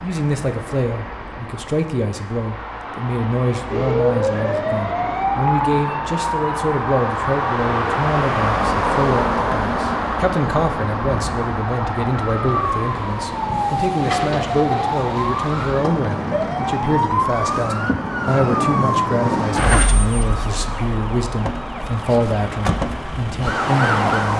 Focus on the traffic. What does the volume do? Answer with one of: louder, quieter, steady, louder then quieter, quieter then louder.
louder then quieter.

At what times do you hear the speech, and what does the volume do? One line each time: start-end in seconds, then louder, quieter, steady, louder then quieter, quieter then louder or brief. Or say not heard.
0.0-24.3 steady.